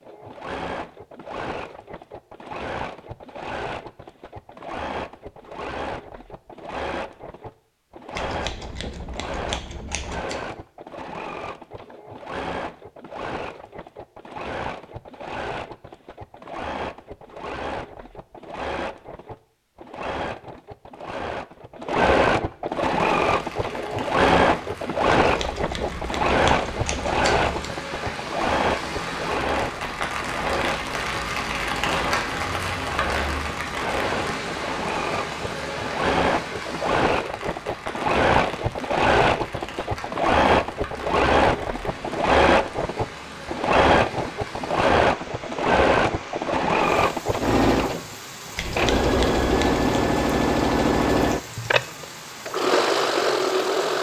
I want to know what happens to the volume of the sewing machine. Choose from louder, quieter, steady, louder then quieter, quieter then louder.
louder.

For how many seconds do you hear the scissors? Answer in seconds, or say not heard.
6 s.